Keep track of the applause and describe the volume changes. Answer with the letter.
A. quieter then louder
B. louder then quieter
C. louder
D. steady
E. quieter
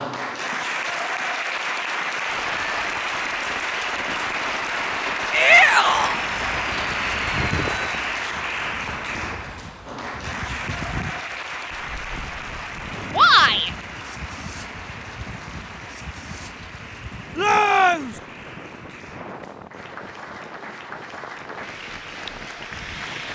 E.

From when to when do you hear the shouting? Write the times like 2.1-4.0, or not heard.
5.3-6.2, 13.1-13.7, 17.4-18.1.